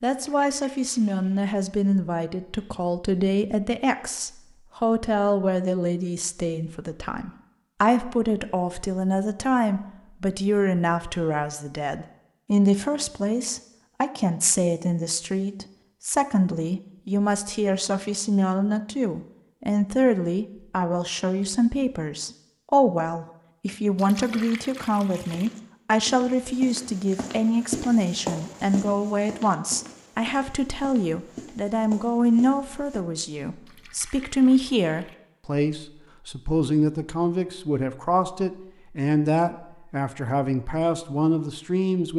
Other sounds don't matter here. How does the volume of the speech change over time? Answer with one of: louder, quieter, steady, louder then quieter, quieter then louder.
steady.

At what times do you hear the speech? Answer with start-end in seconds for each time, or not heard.
0.0-42.1.